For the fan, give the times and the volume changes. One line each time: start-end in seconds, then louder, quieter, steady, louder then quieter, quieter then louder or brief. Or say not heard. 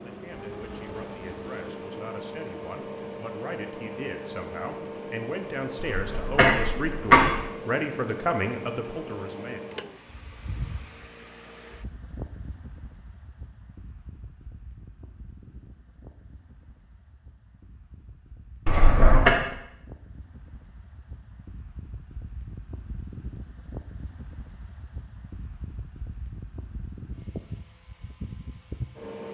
0.0-29.3 quieter then louder.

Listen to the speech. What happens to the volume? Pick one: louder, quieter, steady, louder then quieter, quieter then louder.
louder.